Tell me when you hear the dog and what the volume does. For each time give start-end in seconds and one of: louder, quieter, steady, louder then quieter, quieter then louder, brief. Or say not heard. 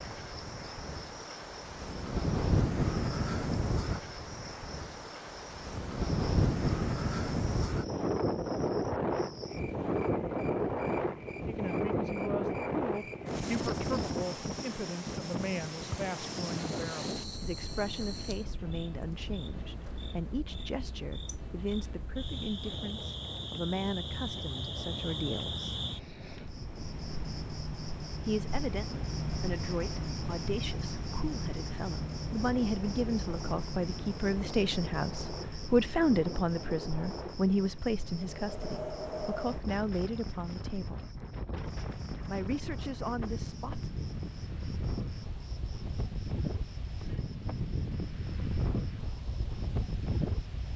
not heard.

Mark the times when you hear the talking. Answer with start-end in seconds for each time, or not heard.
11.4-25.6, 28.2-41.0, 42.2-43.9.